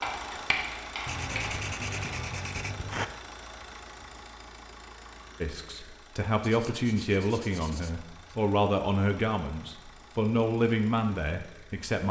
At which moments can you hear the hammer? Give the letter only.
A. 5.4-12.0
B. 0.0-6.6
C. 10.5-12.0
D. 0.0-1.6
D.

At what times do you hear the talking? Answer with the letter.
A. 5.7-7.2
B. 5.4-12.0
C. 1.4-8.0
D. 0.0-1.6
B.